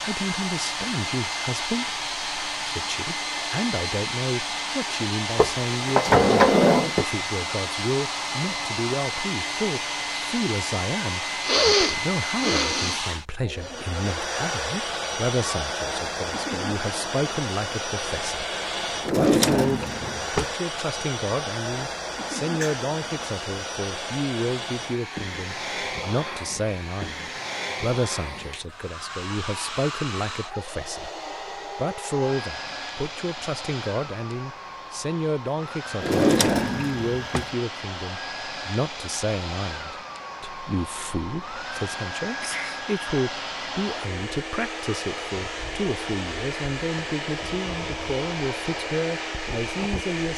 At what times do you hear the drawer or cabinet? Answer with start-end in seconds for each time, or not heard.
5.3-7.0, 19.0-20.5, 36.0-37.5.